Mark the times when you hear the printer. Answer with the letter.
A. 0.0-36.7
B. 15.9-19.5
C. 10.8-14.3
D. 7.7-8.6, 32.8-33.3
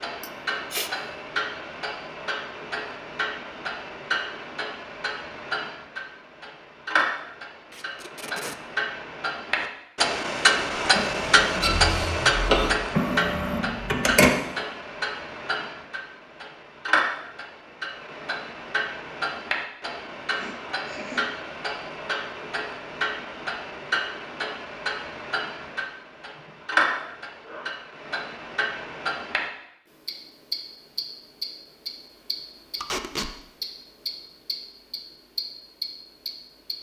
C.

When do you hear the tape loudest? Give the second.
33 s.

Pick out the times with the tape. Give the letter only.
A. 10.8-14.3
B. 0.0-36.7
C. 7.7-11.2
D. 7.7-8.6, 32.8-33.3
D.